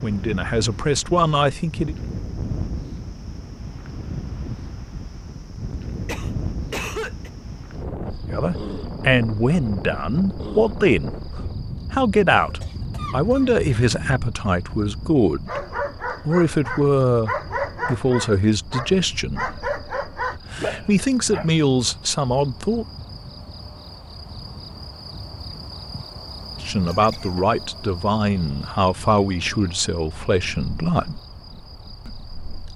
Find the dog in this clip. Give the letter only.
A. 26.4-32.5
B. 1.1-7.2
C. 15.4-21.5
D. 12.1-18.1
C.